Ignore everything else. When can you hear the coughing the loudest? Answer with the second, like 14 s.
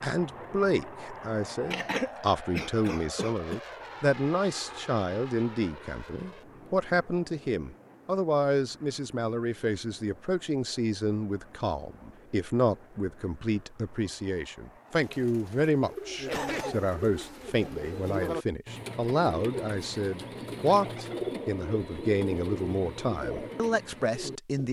2 s.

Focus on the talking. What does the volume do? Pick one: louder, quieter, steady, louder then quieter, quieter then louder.
steady.